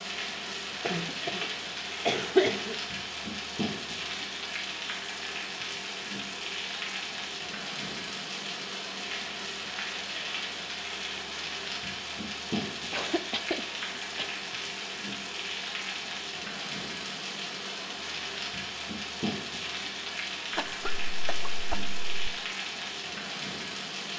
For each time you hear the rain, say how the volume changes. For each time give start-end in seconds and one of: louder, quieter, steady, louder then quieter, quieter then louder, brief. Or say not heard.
0.0-24.1 steady.